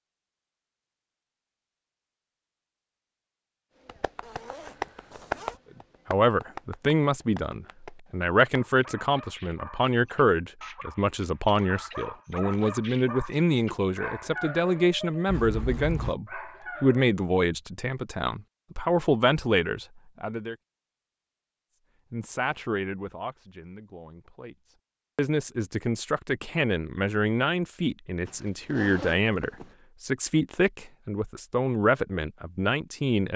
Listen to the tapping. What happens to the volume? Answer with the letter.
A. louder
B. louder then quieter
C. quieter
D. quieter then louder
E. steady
C.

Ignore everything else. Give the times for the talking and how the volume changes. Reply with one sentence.
You can hear the talking from 6.1 to 20.6 s, at a steady volume; and from 22.1 to 33.3 s, getting louder.